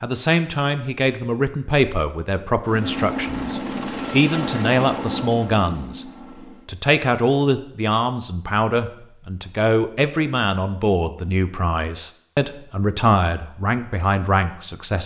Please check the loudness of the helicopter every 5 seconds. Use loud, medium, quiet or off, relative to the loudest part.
loud, medium, off.